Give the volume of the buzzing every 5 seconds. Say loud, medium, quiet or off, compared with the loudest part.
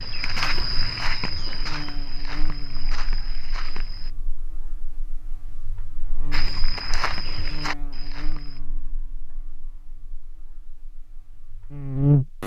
quiet, quiet, loud.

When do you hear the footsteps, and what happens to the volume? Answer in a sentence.
The footsteps can be heard from 0.0 to 4.1 s, getting quieter; and briefly from 6.3 to 8.6 s.